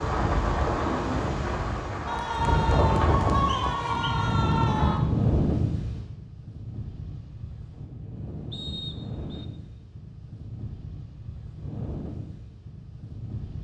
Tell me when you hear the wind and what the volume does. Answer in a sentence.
You can hear the wind from 0.0 to 13.6 s, getting quieter.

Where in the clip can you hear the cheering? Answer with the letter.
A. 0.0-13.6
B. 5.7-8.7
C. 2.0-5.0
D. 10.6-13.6
C.